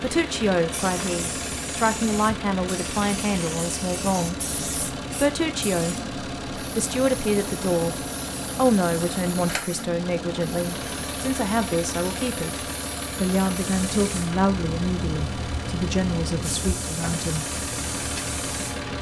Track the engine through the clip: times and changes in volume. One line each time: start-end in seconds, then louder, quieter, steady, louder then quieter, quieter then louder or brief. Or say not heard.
0.0-18.9 steady.